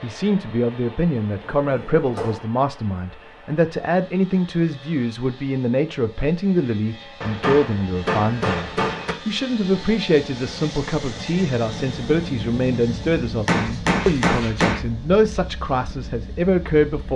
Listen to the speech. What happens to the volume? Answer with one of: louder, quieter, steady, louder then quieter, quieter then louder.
steady.